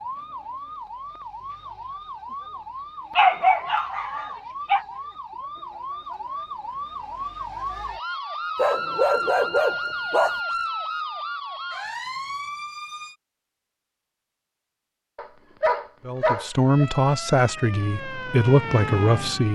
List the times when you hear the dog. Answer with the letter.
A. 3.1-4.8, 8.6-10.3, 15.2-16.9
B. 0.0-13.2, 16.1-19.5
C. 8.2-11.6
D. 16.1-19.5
A.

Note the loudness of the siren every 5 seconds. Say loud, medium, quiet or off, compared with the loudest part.
medium, loud, loud, loud.